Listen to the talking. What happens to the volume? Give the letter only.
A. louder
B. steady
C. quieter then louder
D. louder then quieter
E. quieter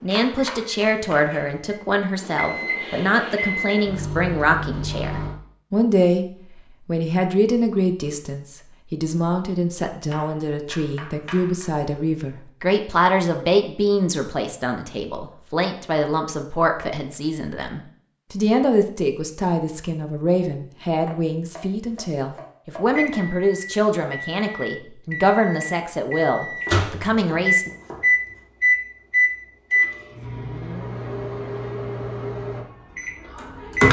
B.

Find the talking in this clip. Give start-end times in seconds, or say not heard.
0.0-6.2, 6.8-27.7.